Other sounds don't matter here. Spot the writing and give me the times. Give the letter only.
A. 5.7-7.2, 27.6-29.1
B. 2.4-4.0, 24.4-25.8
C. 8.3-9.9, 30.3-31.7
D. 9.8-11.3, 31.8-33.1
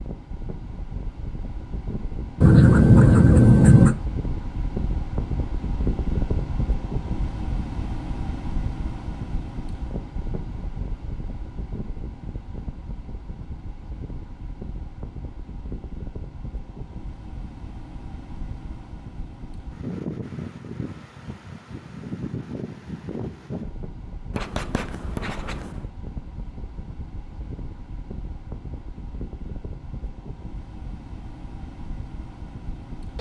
B.